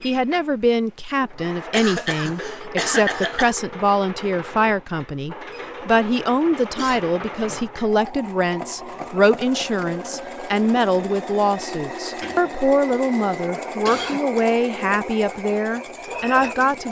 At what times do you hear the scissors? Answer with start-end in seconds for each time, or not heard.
not heard.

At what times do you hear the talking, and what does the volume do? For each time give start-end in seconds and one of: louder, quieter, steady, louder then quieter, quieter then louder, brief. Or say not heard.
0.0-16.8 steady.